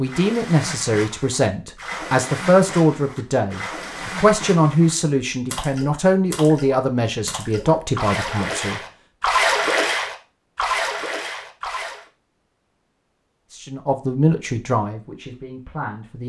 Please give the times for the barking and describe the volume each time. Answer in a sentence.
The barking can't be heard in this clip.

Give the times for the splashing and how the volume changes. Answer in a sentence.
The splashing can be heard from 0.0 to 12.1 s, getting louder.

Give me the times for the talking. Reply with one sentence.
The talking can be heard from 0.0 to 8.8 s and from 13.5 to 16.2 s.